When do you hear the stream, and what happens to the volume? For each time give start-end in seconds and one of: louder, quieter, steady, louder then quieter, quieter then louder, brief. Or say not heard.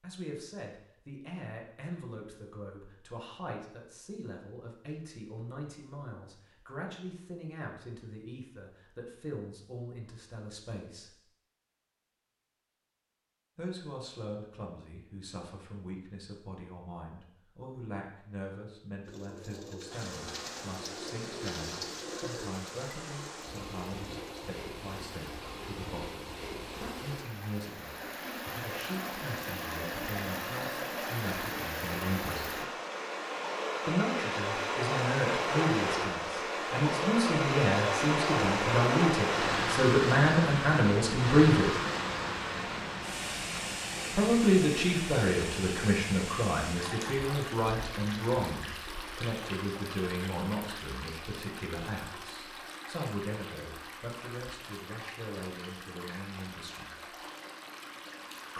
19.9-58.5 louder then quieter.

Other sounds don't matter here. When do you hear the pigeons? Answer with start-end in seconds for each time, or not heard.
19.0-24.6.